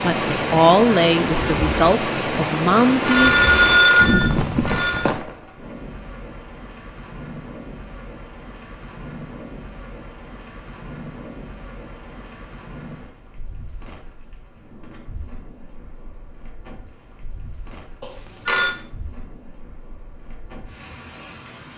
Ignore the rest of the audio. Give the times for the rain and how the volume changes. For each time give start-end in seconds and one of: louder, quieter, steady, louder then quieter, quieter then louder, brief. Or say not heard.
0.0-21.7 quieter.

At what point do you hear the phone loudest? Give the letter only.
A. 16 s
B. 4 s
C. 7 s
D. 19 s
B.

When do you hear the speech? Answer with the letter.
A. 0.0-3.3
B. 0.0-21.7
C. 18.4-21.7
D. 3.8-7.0
A.